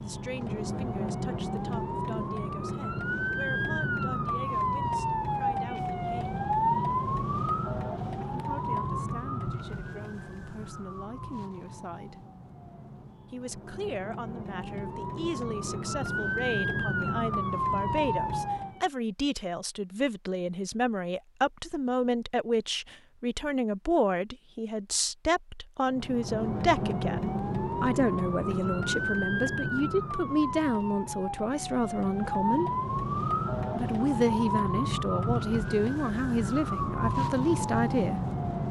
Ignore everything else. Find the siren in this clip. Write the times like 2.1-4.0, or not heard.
0.0-18.9, 25.9-38.6.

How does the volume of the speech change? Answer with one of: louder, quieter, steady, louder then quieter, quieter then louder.
louder.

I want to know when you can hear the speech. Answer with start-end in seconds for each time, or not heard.
0.0-6.4, 8.2-12.2, 13.3-32.7, 33.8-38.2.